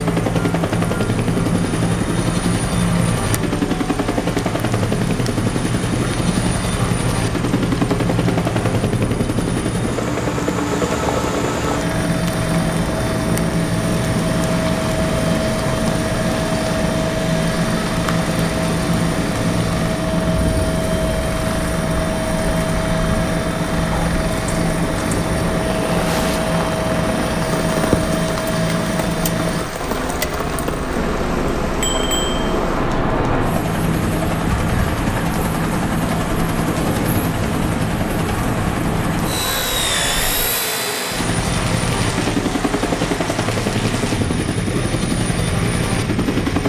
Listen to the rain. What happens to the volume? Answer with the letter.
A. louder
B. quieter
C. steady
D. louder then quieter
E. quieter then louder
C.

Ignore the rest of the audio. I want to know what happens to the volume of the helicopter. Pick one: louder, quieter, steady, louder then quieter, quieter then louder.
steady.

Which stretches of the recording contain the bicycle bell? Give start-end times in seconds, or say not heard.
31.8-32.5.